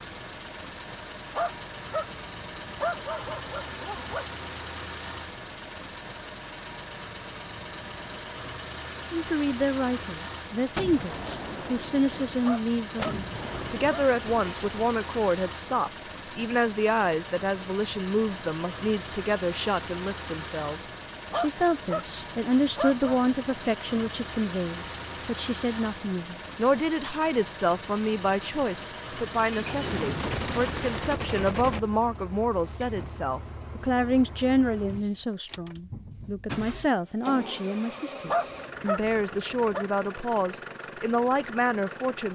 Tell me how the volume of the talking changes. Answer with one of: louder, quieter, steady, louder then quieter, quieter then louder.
steady.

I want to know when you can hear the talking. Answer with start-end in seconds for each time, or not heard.
9.1-42.3.